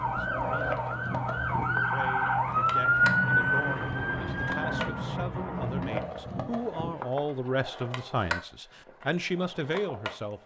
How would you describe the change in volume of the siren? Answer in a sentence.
The loudness of the siren goes up, then down.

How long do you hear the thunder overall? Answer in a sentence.
The thunder can be heard for 4 seconds in total.